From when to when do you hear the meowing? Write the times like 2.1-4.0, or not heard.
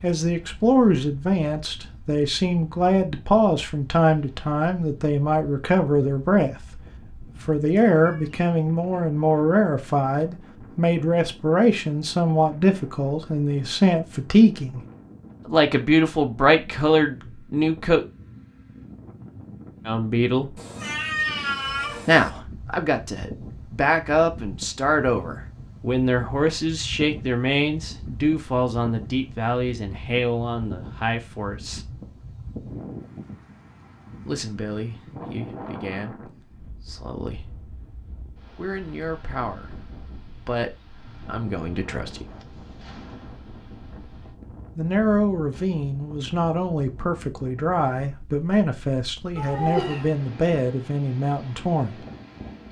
7.2-8.3, 20.6-22.3, 49.4-50.1.